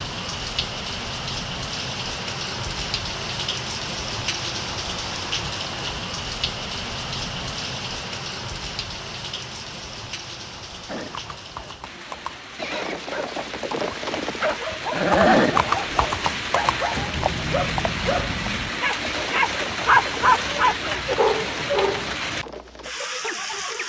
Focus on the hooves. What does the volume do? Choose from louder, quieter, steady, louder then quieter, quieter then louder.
louder then quieter.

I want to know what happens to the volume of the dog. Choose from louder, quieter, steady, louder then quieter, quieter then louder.
louder then quieter.